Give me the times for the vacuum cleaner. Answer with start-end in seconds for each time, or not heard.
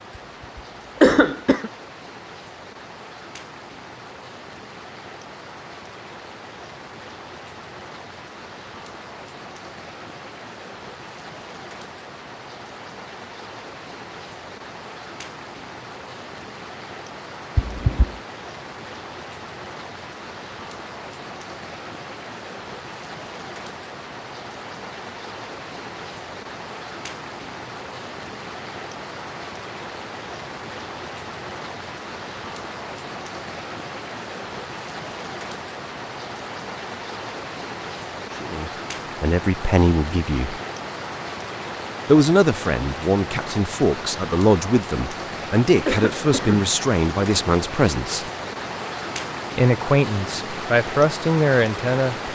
not heard.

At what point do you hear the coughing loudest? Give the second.
1 s.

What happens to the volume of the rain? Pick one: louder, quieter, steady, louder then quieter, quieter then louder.
louder.